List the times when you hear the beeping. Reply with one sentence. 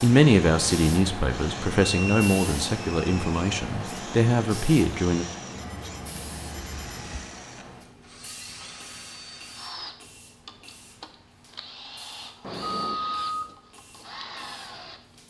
You can hear the beeping from 1.8 to 2.5 s, from 5.5 to 7.2 s and from 12.4 to 13.6 s.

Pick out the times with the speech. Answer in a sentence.
The speech can be heard from 0.0 to 5.2 s.